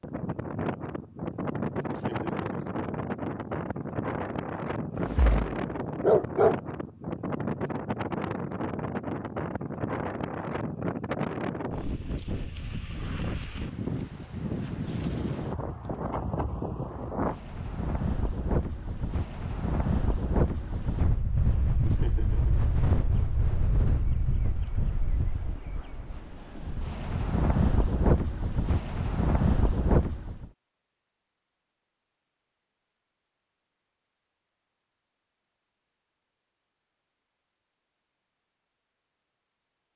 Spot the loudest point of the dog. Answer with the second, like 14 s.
6 s.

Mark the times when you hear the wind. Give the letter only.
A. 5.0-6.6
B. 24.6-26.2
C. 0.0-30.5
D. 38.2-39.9
C.